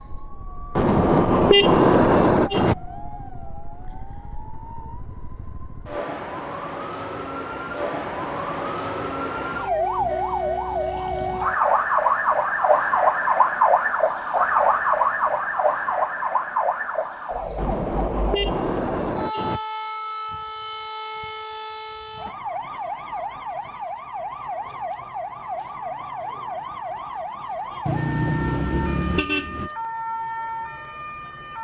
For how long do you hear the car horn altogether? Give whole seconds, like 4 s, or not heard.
6 s.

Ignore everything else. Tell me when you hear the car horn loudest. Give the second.
2 s.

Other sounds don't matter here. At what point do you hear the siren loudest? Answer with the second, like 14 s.
13 s.